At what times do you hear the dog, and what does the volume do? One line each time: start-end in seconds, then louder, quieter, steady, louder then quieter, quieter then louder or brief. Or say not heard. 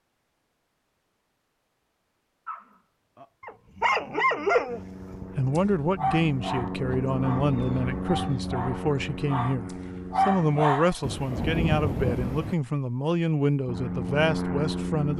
2.5-10.9 quieter then louder.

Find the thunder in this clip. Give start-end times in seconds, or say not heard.
11.0-12.6.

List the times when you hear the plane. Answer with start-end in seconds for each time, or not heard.
4.7-10.7, 13.7-15.1.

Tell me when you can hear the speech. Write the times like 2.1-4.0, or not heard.
5.3-15.1.